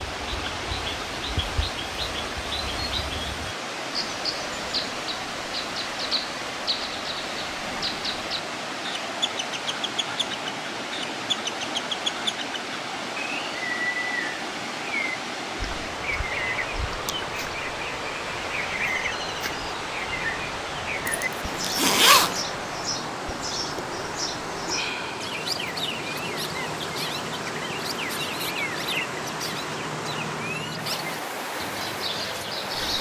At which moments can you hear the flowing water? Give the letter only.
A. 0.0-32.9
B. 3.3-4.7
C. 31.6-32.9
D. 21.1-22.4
A.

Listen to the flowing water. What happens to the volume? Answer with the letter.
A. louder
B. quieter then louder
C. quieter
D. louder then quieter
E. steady
E.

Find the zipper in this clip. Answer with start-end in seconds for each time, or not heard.
21.1-22.4.